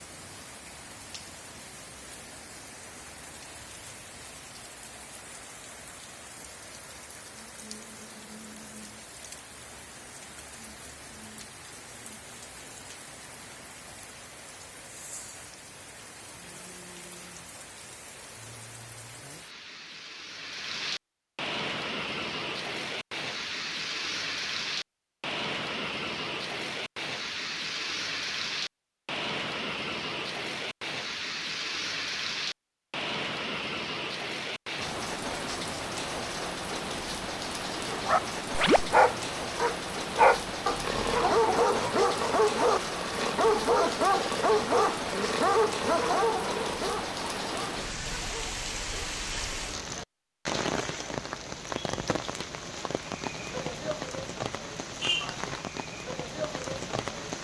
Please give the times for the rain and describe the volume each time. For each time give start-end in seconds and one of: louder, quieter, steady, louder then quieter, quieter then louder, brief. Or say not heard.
0.0-57.3 louder.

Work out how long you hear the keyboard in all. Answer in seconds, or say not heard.
not heard.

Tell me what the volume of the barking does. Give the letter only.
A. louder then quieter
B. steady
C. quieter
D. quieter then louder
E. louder
C.